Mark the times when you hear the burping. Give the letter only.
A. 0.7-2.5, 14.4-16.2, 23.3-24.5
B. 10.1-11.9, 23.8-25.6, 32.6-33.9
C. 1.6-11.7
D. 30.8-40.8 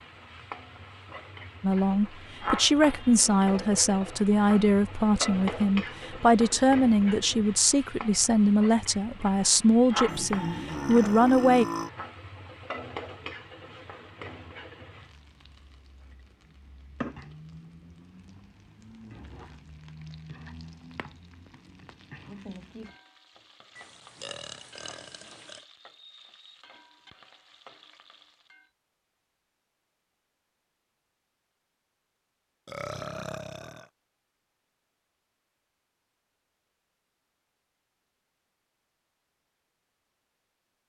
B.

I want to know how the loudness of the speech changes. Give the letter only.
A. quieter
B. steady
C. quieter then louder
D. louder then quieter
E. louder
B.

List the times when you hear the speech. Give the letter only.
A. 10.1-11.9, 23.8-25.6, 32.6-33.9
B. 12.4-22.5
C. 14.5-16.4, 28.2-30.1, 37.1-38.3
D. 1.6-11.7
D.